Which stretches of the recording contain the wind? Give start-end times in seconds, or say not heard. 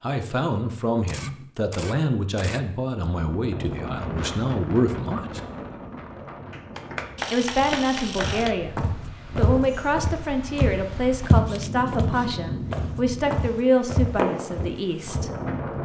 3.1-15.8.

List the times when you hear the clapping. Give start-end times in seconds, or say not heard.
6.5-8.6.